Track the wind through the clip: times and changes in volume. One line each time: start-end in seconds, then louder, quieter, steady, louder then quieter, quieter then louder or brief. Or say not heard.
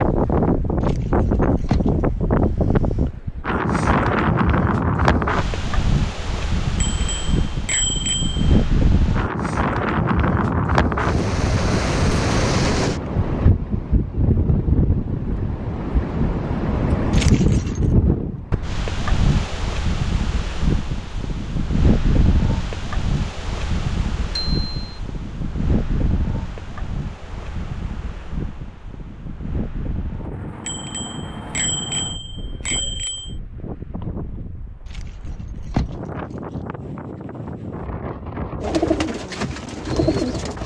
0.0-40.6 quieter.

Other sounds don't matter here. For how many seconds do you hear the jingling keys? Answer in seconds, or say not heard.
4 s.